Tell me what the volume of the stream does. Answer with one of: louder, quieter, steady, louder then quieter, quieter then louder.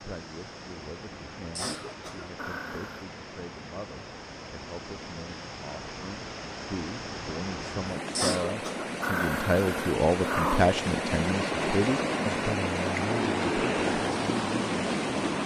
louder.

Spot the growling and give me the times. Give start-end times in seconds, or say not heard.
2.4-3.0, 9.0-10.8.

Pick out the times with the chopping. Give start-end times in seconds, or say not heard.
not heard.